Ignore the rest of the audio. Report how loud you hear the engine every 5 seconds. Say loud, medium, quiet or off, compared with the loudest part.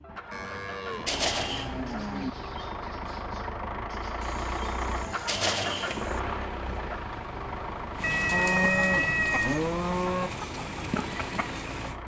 loud, loud, medium.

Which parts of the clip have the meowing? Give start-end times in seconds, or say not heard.
1.1-1.7, 5.2-6.0, 8.0-9.6.